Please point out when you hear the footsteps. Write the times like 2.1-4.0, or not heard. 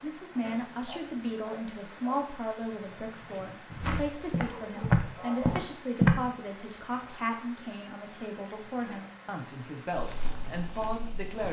3.8-6.2, 9.9-11.4.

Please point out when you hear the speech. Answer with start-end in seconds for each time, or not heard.
0.0-11.4.